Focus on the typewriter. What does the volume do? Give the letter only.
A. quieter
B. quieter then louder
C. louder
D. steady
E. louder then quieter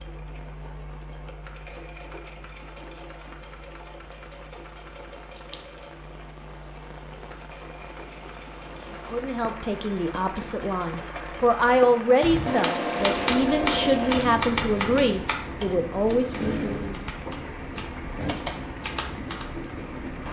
B.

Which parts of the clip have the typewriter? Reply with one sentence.
The typewriter can be heard from 12.2 to 19.4 s.